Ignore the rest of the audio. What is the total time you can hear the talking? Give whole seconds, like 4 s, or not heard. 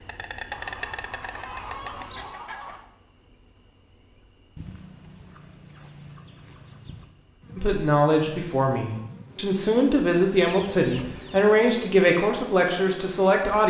6 s.